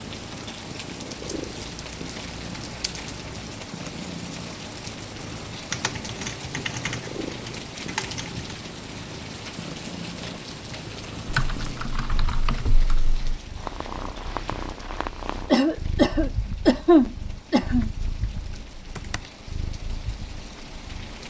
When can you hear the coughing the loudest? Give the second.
17 s.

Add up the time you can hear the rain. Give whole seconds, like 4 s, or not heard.
21 s.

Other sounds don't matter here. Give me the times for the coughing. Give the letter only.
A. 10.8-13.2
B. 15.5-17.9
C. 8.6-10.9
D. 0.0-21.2
B.